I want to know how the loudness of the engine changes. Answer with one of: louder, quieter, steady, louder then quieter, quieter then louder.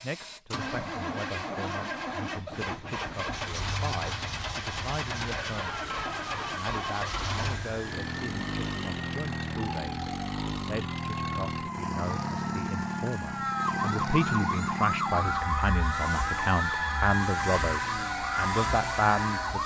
quieter.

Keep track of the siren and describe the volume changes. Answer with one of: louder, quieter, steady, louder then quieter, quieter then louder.
louder.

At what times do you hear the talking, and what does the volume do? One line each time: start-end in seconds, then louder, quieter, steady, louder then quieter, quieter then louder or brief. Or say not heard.
0.0-19.6 louder.